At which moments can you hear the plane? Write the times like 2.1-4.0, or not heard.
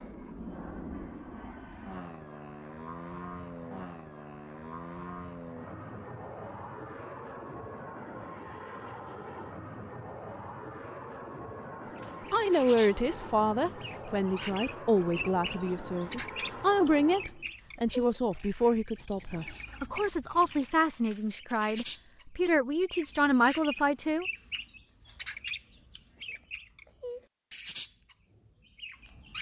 0.0-17.6.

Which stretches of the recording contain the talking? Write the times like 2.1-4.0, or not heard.
12.3-24.2.